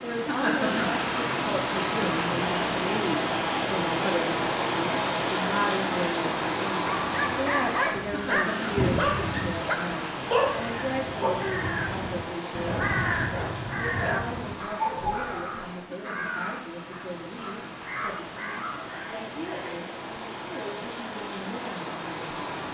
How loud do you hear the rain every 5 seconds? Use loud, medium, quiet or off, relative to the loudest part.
loud, loud, medium, quiet, medium.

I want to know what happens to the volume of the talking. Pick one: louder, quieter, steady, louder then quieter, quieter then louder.
quieter.